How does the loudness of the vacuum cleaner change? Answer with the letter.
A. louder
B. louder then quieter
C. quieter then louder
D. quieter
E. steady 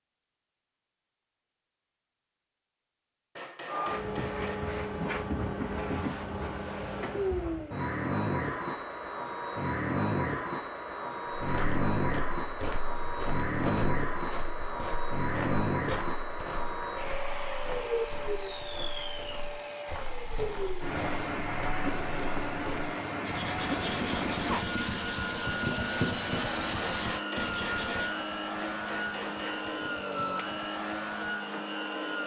E.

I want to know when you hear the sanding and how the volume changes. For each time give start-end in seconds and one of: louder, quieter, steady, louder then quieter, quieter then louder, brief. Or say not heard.
23.2-31.6 quieter.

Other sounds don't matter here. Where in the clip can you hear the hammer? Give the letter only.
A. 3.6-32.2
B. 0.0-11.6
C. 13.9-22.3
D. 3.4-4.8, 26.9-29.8
D.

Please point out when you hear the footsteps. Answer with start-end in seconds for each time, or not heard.
11.3-22.9.